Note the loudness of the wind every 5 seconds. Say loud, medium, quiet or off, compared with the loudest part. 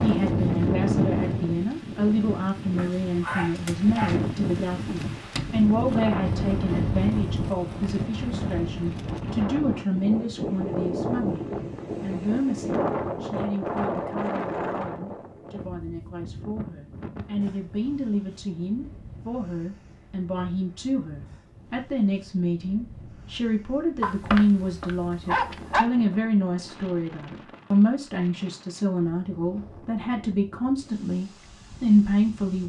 loud, loud, loud, quiet, quiet, quiet, quiet.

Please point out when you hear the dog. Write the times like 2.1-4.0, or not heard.
2.8-5.2, 24.0-25.9.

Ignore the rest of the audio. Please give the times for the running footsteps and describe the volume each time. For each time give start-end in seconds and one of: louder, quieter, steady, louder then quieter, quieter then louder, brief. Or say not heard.
not heard.